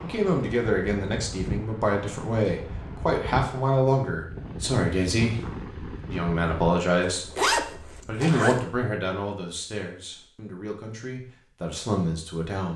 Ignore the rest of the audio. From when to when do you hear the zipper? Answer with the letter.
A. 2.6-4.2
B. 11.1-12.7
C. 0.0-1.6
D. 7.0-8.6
D.